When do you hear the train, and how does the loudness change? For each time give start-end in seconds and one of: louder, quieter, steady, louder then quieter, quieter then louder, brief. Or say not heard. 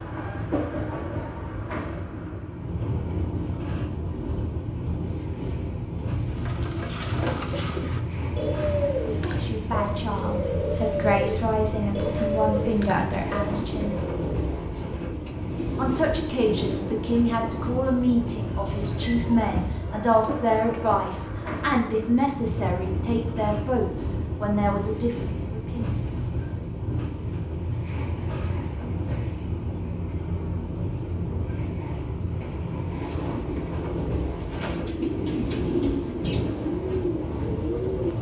0.0-38.1 steady.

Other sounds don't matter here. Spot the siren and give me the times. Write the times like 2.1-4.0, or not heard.
not heard.